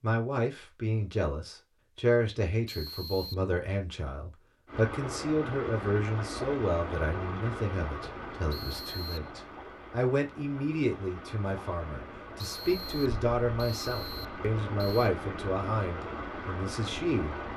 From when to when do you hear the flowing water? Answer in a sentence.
The flowing water can be heard from 4.7 to 17.5 s.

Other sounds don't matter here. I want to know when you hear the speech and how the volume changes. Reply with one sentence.
You can hear the speech from 0.0 to 17.4 s, at a steady volume.